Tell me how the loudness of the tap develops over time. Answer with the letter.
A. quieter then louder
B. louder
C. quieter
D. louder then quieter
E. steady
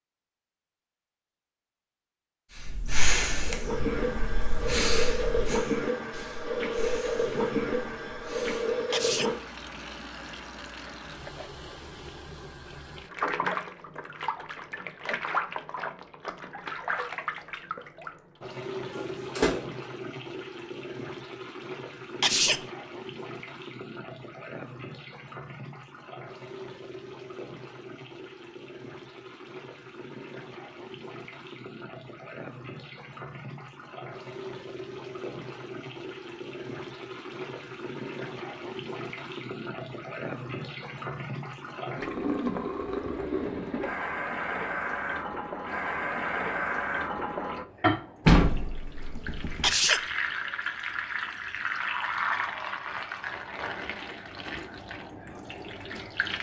A.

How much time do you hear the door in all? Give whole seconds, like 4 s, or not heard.
2 s.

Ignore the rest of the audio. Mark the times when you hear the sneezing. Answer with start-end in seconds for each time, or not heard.
8.9-9.3, 22.2-22.6, 49.6-50.0.